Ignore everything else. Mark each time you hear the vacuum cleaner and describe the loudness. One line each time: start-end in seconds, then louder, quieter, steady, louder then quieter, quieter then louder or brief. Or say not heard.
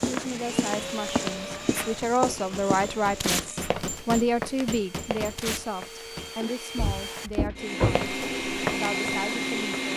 0.1-9.9 quieter then louder.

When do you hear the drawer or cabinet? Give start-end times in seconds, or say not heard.
6.8-8.1.